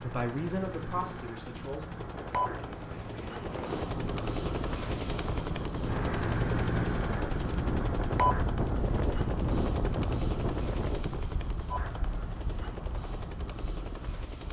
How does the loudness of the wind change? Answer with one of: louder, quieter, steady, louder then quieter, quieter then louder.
louder then quieter.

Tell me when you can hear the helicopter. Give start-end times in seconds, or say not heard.
0.0-14.4.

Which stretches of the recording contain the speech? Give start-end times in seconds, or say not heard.
0.0-1.9.